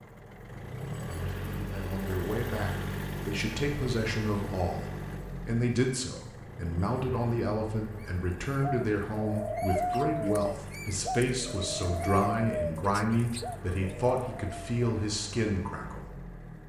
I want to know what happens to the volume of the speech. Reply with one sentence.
The loudness of the speech stays about the same.